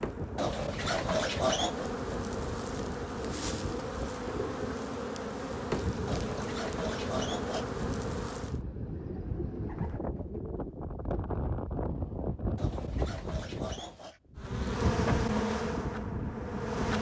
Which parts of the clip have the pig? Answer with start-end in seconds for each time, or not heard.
0.3-1.9, 6.0-7.7, 12.6-14.2.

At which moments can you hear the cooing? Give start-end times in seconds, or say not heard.
3.2-4.5, 8.8-10.8.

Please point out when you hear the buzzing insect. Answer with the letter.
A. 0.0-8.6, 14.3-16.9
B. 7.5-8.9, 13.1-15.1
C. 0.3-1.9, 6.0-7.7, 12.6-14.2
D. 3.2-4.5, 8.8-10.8
A.